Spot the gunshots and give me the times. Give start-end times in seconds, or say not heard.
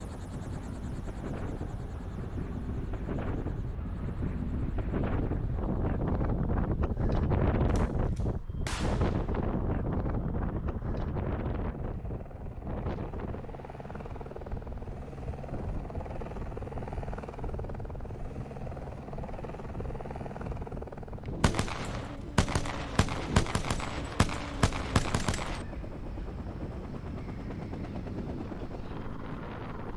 7.8-9.6, 21.4-25.6.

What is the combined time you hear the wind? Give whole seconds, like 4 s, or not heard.
30 s.